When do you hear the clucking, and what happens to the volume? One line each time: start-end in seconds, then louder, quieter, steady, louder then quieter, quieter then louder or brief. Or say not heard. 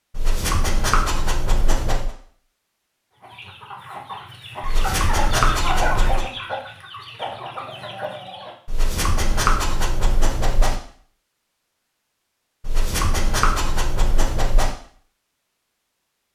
3.2-8.6 louder then quieter.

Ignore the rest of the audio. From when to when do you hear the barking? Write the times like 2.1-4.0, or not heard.
0.1-2.1, 4.6-6.2, 8.7-10.8, 12.6-14.8.